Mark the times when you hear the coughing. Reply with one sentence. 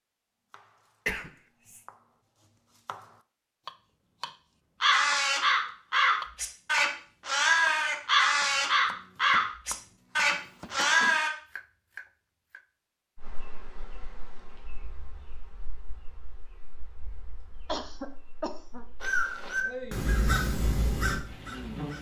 You can hear the coughing from 1.1 to 1.8 s, from 10.3 to 11.2 s and from 17.6 to 18.9 s.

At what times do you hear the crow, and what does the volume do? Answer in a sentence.
The crow can be heard from 4.8 to 11.3 s, at a steady volume; and briefly from 19.0 to 21.9 s.